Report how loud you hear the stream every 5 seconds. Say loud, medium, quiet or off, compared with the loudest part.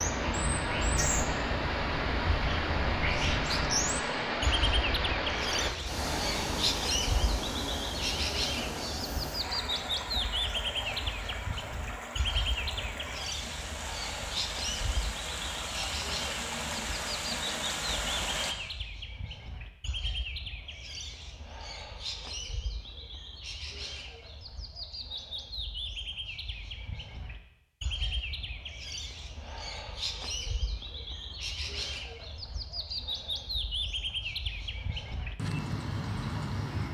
loud, loud, medium, loud, off, off, off, off.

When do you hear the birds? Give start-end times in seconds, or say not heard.
0.0-36.9.